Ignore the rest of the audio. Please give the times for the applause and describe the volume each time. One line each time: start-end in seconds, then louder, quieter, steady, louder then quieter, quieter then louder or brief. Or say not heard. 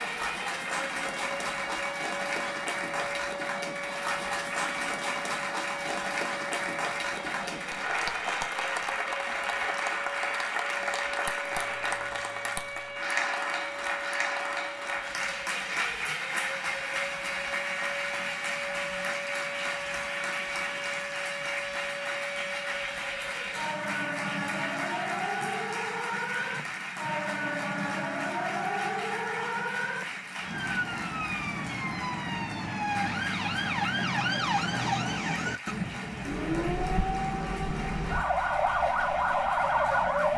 0.0-40.3 quieter.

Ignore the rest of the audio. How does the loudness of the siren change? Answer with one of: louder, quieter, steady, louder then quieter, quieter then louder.
louder.